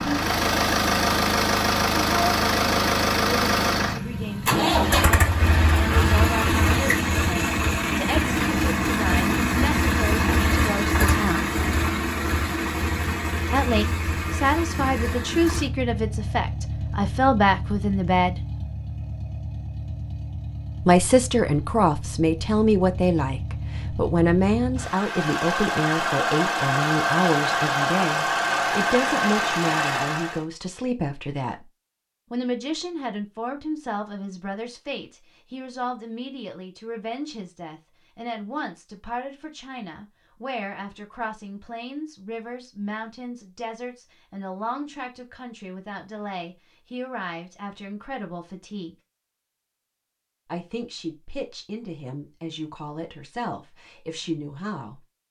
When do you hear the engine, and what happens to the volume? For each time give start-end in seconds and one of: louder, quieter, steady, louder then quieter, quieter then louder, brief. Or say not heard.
0.0-30.4 quieter then louder.